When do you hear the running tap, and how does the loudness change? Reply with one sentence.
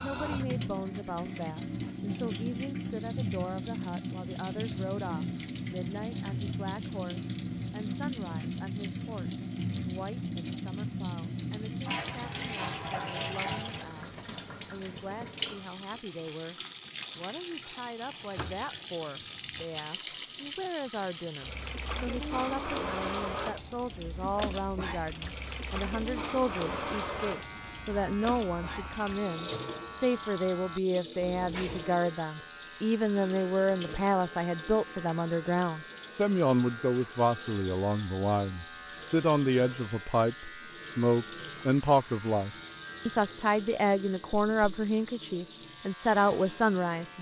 The running tap can be heard from 0.0 to 47.1 s, getting quieter.